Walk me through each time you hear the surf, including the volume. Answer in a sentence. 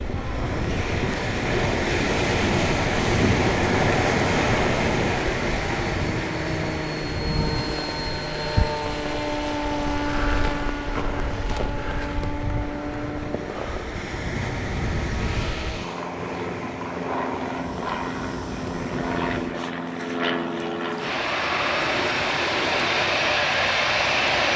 You can hear the surf from 0.0 to 24.5 s, getting quieter.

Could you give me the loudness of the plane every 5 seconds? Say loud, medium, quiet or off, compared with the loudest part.
medium, medium, medium, medium, loud.